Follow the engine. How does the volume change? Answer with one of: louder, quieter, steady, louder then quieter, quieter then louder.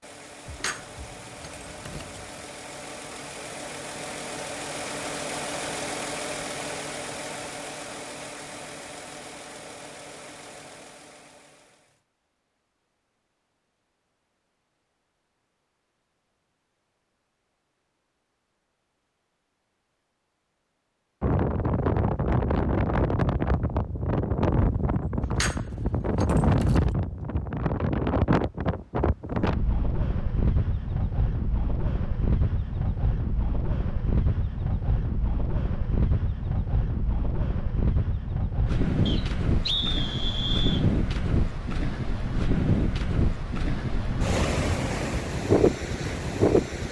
louder then quieter.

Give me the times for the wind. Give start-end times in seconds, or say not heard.
21.2-46.8.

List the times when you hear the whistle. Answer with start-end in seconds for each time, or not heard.
39.0-40.9.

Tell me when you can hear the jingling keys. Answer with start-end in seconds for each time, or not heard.
0.5-2.5, 25.2-26.9.